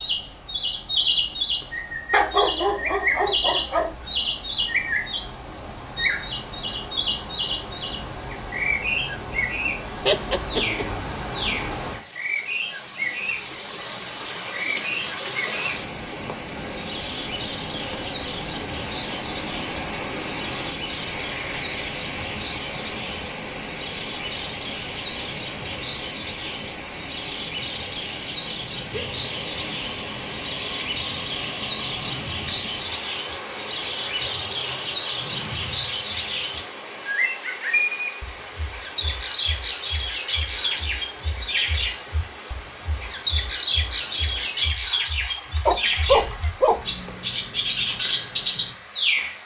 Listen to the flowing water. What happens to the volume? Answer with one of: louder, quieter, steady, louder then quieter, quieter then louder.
louder then quieter.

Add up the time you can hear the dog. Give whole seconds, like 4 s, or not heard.
3 s.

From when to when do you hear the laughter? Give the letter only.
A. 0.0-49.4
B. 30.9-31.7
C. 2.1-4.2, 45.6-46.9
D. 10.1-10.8
D.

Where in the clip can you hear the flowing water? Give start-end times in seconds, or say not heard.
0.0-49.4.